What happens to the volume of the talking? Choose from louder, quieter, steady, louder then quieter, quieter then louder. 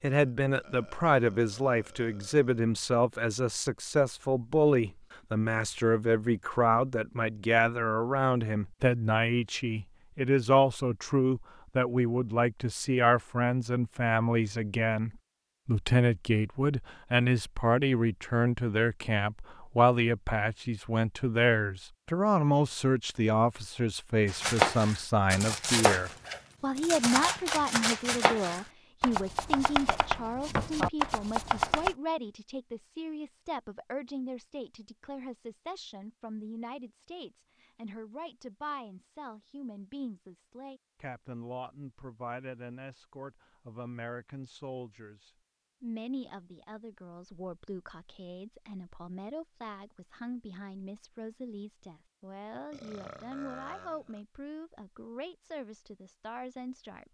quieter.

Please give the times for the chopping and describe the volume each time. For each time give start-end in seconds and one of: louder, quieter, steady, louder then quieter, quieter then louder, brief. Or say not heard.
24.2-31.9 steady.